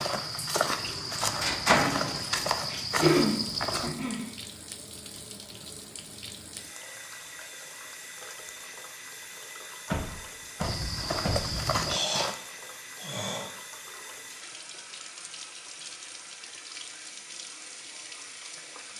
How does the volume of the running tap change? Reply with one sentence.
The volume of the running tap stays about the same.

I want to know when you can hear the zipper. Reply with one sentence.
You can't hear the zipper here.